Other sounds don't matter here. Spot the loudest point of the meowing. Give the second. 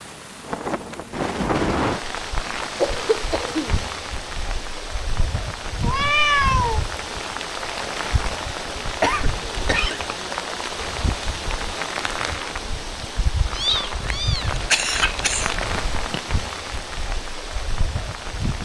6 s.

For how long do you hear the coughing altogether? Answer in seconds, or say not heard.
4 s.